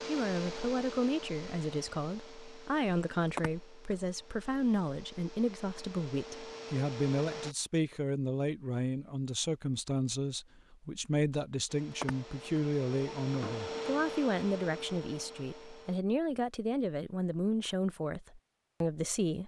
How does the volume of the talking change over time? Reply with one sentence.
The volume of the talking stays about the same.